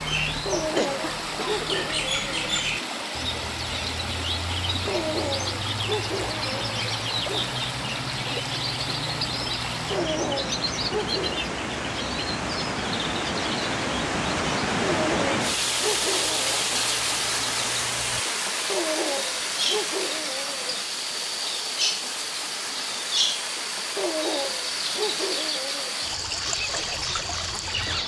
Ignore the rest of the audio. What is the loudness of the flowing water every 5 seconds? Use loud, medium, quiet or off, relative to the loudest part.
medium, medium, loud, loud, medium, medium.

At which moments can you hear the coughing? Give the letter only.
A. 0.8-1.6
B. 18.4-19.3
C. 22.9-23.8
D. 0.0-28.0
A.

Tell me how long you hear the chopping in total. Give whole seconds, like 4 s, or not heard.
not heard.